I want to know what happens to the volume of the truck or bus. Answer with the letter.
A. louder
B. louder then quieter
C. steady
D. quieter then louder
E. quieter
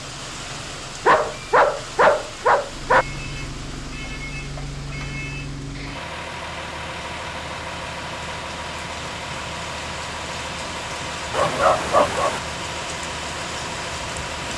A.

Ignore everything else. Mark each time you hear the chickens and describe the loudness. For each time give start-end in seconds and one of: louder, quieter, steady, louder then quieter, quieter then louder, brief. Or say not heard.
not heard.